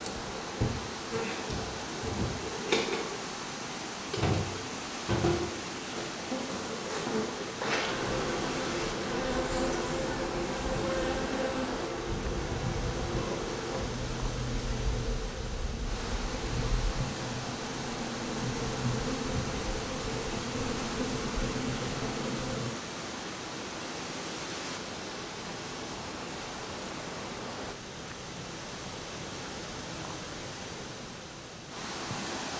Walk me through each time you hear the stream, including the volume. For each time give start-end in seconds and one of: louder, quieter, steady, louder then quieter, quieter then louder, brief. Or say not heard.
0.0-32.5 steady.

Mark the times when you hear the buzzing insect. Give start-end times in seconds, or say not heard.
0.0-22.7.